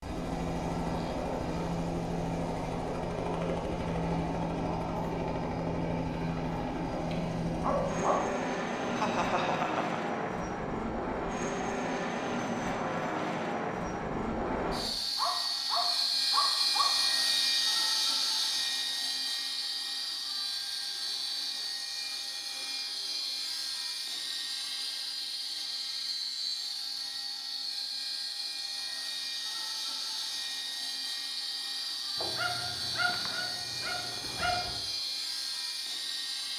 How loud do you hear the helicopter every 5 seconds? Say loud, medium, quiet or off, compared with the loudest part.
loud, loud, loud, loud, medium, medium, medium, medium.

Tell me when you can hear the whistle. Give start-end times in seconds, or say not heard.
not heard.